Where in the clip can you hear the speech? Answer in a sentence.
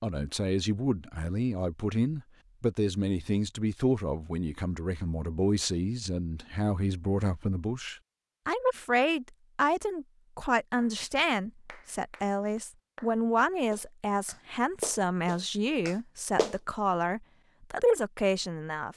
The speech can be heard from 0.0 to 18.9 s.